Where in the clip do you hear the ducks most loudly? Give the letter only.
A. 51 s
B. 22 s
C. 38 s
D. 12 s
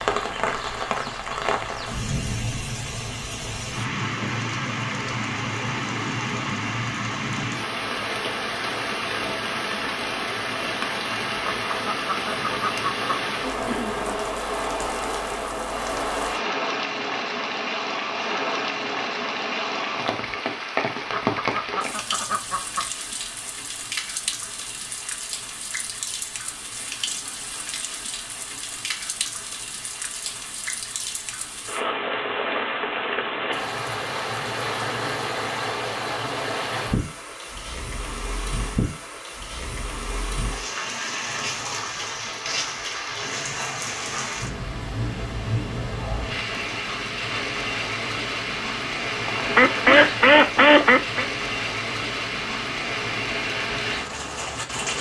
A.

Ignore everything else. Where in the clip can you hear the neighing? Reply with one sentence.
The neighing can be heard from 49.2 to 50.1 s.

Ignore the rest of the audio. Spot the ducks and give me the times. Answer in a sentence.
The ducks can be heard from 11.3 to 13.1 s, from 21.1 to 22.9 s and from 49.5 to 51.2 s.